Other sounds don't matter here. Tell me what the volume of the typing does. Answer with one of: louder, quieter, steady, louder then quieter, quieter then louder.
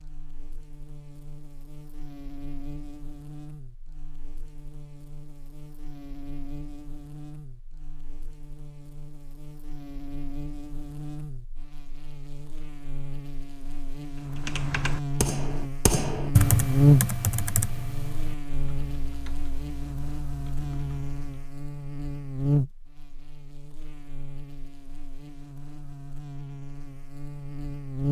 louder then quieter.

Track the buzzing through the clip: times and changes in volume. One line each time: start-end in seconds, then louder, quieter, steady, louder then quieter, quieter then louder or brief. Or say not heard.
0.0-28.0 louder then quieter.